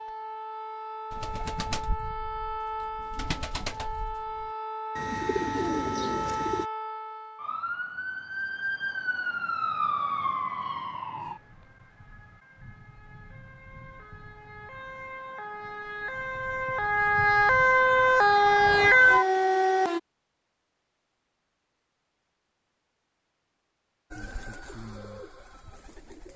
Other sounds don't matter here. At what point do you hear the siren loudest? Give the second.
19 s.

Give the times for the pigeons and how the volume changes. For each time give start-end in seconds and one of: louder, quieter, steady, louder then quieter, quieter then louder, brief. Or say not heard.
1.1-6.7 louder
24.1-26.3 brief.